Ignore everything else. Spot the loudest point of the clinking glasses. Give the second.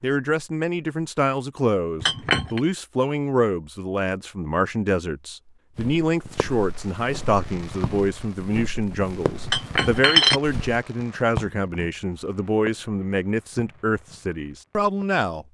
10 s.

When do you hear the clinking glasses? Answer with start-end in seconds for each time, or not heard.
2.0-2.6, 9.4-10.4.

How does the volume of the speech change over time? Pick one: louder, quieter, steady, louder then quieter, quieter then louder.
steady.